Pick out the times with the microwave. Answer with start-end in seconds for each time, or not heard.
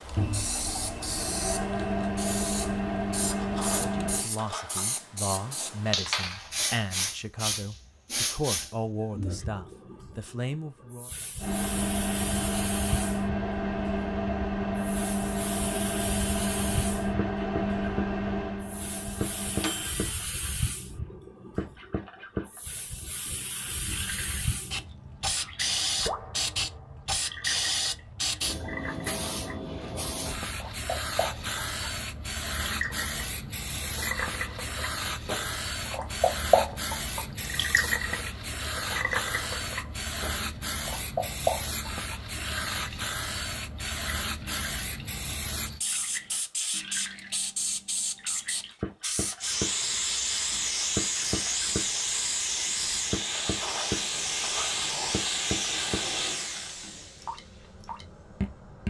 0.0-4.2, 11.4-20.1.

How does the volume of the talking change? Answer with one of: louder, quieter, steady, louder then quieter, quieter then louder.
steady.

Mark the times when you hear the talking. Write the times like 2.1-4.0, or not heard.
3.6-11.1.